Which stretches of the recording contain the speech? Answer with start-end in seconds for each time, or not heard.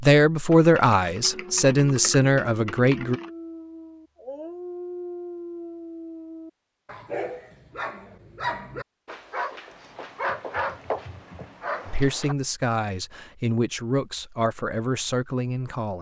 0.0-3.2, 11.8-15.9.